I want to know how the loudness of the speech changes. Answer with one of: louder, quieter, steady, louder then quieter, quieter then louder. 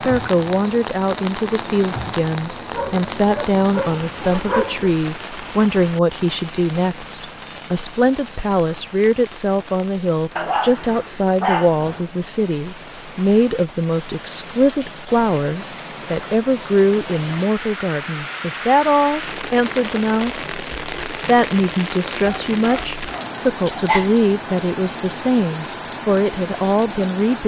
steady.